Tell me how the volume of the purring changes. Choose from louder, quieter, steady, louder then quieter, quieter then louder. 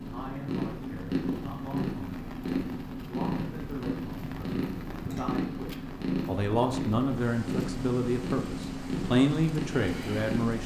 steady.